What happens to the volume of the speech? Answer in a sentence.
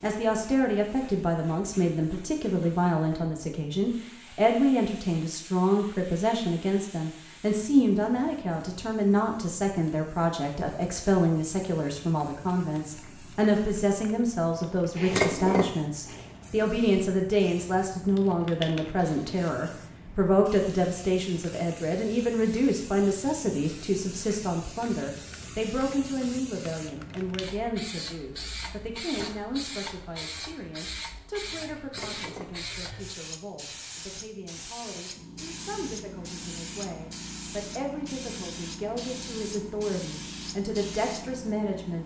The volume of the speech goes down.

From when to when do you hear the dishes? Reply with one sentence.
The dishes can be heard from 15.1 to 15.8 s and from 31.9 to 32.5 s.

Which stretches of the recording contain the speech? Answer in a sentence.
You can hear the speech from 0.0 to 42.0 s.